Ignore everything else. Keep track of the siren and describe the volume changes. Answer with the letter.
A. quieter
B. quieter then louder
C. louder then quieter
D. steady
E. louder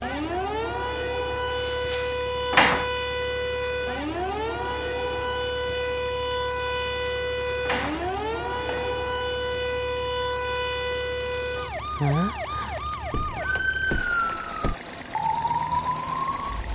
D.